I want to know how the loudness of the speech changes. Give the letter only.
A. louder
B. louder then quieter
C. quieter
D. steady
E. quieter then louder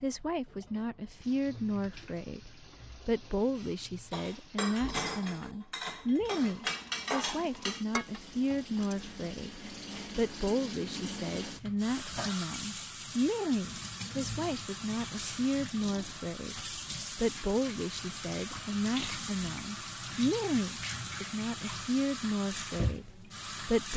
D.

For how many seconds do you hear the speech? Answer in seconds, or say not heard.
24 s.